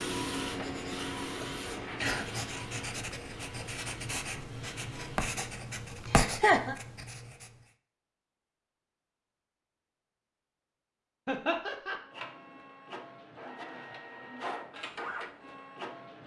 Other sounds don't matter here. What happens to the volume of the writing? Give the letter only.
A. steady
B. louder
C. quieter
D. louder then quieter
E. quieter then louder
B.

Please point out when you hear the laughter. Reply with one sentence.
You can hear the laughter from 1.4 to 2.2 s, from 6.1 to 6.8 s and from 11.2 to 12.0 s.